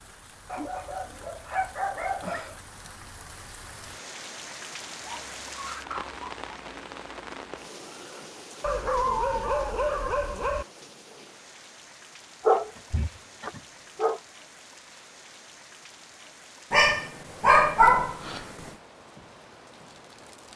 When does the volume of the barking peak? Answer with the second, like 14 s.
18 s.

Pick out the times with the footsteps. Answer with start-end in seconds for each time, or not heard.
not heard.